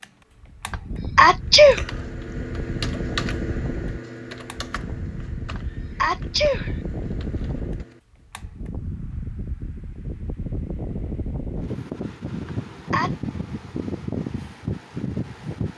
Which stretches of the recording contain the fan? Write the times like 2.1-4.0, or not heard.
0.0-15.7.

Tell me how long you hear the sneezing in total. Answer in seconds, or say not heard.
3 s.